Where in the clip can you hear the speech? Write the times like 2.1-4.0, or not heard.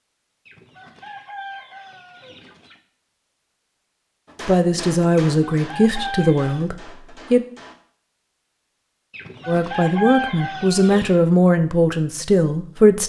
4.5-7.5, 9.4-13.0.